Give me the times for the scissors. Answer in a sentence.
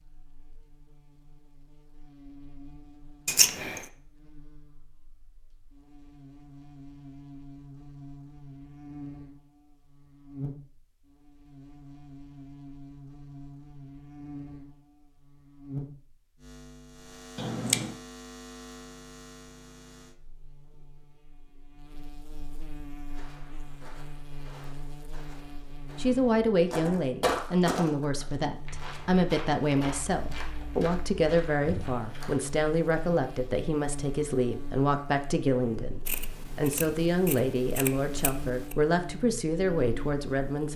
The scissors can be heard from 3.2 to 3.9 s, from 17.4 to 17.9 s and from 36.0 to 38.8 s.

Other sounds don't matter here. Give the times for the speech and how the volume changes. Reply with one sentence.
You can hear the speech from 25.9 to 40.7 s, at a steady volume.